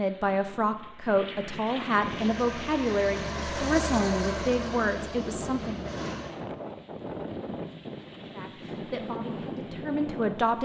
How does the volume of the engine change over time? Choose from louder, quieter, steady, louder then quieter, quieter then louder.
louder then quieter.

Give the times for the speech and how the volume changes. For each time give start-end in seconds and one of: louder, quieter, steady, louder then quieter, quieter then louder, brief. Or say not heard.
0.0-5.9 steady
8.3-10.6 brief.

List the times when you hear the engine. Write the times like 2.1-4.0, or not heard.
1.9-6.3.